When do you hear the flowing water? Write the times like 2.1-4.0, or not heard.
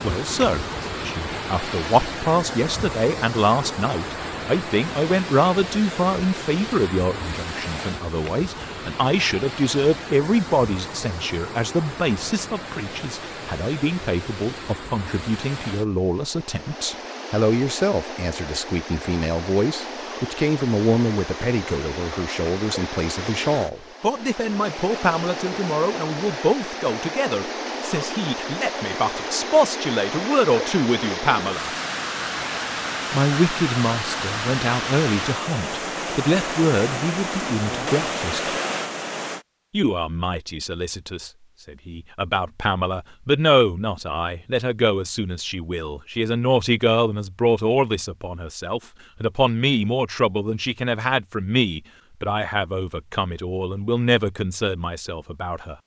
0.0-39.5.